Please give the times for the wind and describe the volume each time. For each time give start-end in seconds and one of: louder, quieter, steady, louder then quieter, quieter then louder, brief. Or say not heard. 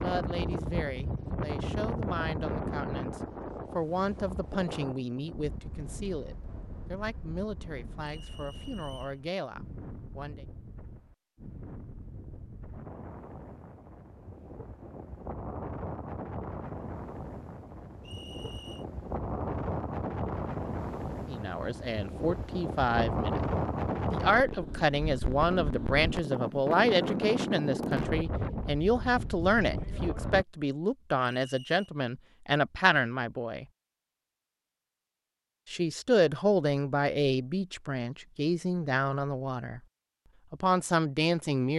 0.0-30.4 quieter then louder.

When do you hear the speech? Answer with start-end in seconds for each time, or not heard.
0.0-10.4, 21.2-23.4, 24.1-33.6, 35.6-39.8, 40.5-41.7.